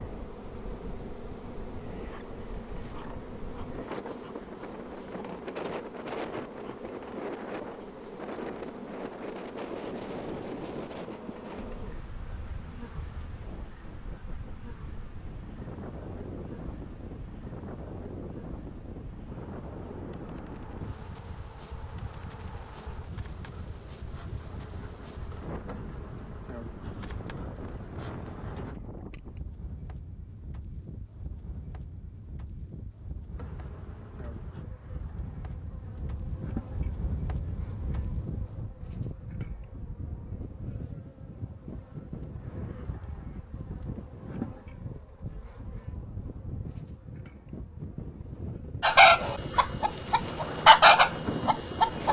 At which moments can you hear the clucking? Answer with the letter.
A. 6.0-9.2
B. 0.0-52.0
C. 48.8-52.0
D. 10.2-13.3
C.